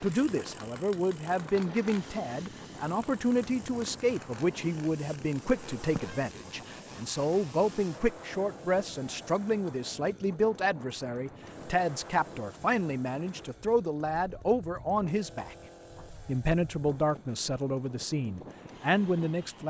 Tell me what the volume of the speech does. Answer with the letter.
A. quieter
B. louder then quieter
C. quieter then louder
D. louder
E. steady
E.